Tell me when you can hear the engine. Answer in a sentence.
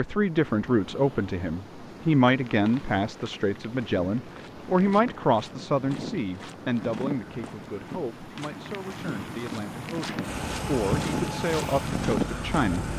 You can hear the engine from 10.2 to 12.9 s.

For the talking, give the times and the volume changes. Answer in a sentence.
The talking can be heard from 0.0 to 12.9 s, getting quieter then louder.